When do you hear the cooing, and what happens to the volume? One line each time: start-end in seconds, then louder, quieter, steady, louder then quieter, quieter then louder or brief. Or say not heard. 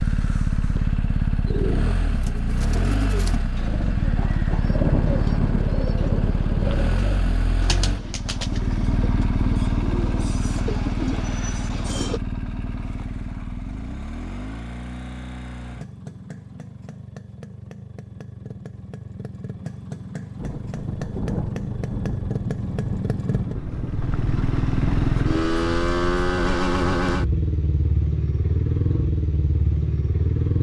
1.4-12.2 steady.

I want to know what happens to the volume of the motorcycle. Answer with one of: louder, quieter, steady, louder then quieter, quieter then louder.
quieter then louder.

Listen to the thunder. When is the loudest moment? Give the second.
5 s.